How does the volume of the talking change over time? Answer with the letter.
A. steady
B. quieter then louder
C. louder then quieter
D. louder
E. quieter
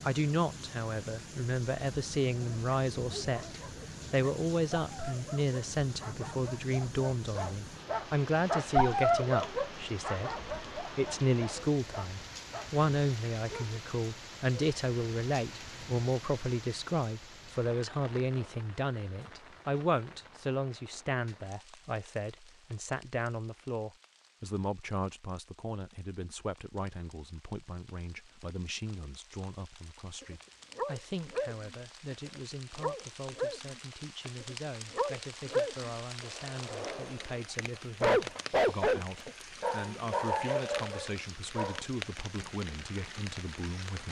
E.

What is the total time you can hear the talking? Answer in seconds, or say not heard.
44 s.